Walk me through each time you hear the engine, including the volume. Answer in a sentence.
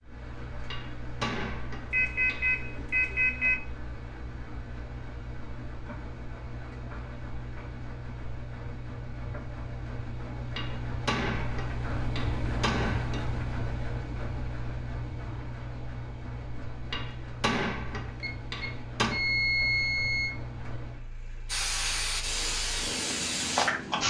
You can hear the engine from 0.0 to 24.0 s, getting louder then quieter.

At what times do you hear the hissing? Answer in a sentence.
You can hear the hissing from 21.4 to 24.0 s.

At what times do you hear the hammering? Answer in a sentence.
You can hear the hammering from 0.7 to 2.5 s, from 10.6 to 13.2 s and from 16.9 to 19.2 s.